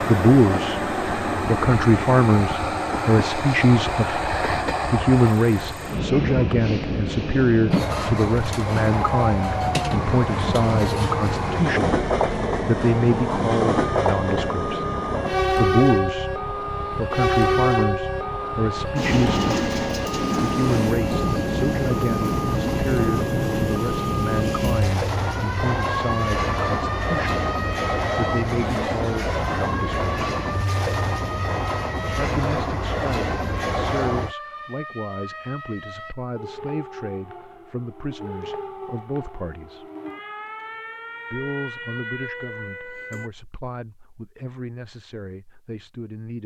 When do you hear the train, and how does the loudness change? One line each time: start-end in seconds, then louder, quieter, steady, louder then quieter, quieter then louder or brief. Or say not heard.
0.0-34.4 steady.